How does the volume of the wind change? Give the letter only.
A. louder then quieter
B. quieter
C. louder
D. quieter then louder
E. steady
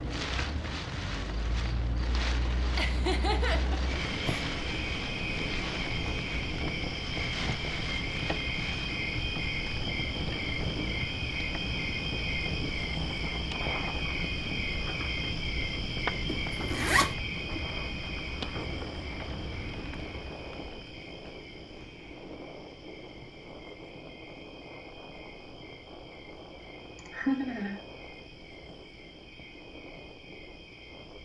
B.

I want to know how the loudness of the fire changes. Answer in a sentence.
The loudness of the fire stays about the same.